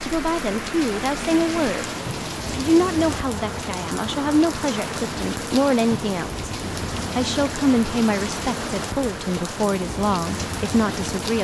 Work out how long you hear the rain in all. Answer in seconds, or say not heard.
11 s.